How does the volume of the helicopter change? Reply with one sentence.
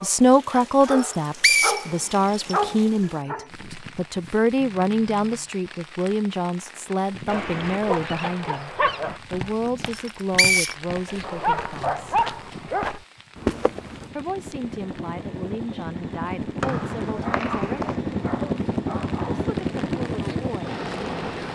The loudness of the helicopter goes up.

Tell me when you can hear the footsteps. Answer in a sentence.
You can hear the footsteps from 9.2 to 14.1 s.